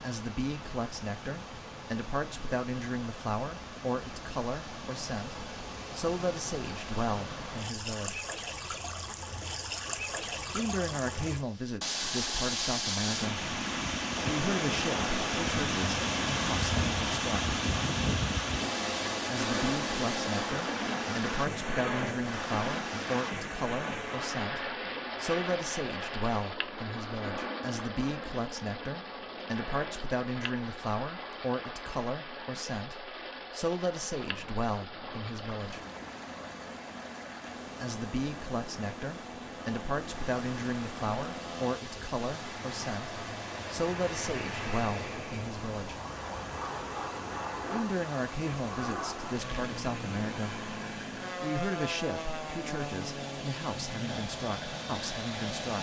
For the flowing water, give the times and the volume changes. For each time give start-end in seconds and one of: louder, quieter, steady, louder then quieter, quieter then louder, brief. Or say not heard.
0.0-55.7 louder then quieter.